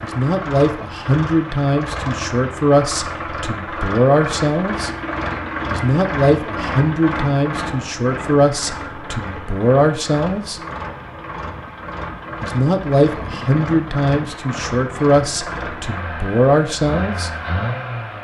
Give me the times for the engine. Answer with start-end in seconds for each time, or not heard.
0.0-18.1.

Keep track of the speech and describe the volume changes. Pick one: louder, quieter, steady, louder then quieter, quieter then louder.
steady.